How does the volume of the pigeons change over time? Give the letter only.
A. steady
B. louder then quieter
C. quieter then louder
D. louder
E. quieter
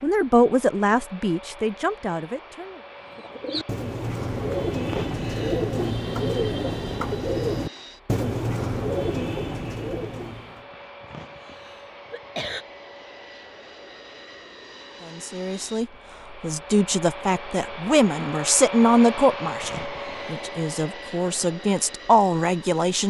A.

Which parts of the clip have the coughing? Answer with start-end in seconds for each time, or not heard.
4.8-5.7, 10.7-12.7, 19.3-20.4.